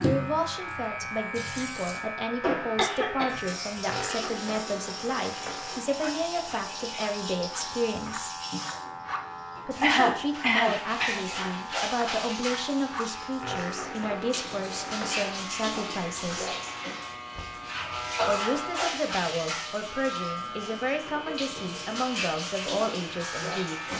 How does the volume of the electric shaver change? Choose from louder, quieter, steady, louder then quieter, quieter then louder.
steady.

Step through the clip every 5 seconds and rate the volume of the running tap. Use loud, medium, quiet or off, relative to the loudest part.
loud, medium, loud, loud, loud.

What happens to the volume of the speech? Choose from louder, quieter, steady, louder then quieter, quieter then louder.
steady.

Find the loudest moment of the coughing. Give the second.
10 s.